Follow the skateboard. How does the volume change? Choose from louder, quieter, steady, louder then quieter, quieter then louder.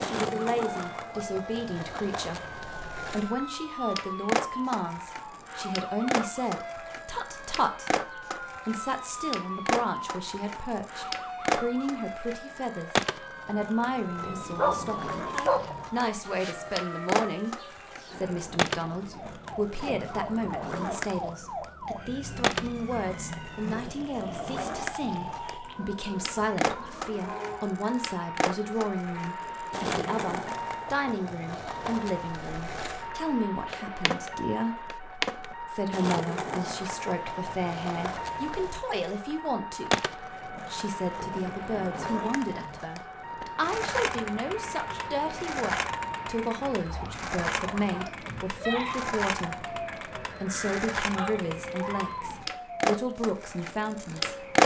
steady.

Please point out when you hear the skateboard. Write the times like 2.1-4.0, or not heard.
0.0-54.6.